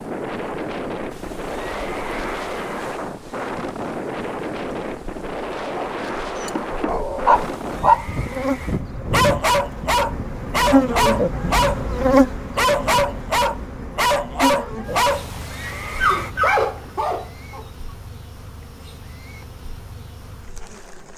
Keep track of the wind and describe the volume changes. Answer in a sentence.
The volume of the wind stays about the same.